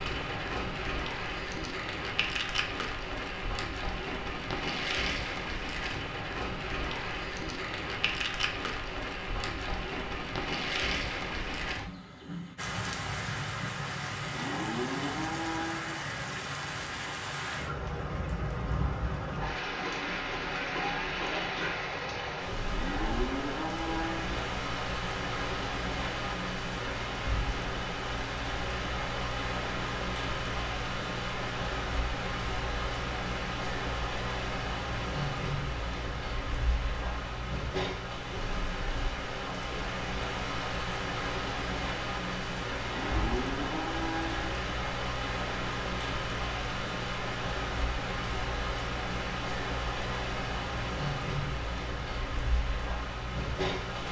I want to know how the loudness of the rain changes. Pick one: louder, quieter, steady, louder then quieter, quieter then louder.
steady.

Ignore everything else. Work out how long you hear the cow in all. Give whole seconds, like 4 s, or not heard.
5 s.